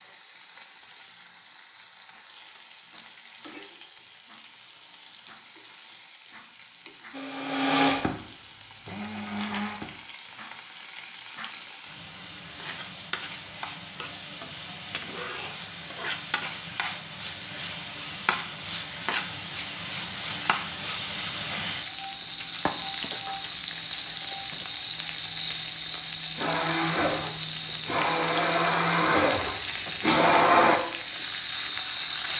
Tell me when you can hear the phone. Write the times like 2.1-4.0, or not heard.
not heard.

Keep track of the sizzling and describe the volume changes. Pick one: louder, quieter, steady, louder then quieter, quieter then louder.
louder.